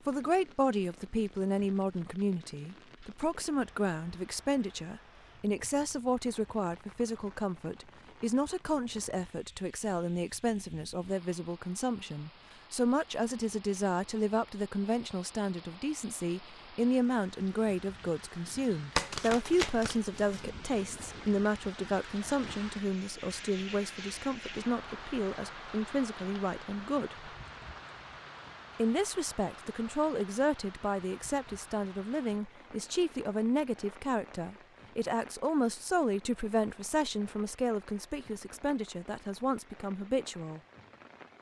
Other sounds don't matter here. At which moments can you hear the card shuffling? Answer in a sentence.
The card shuffling can be heard from 18.9 to 20.4 s.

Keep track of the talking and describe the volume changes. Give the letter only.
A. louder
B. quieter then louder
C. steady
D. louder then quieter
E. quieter
C.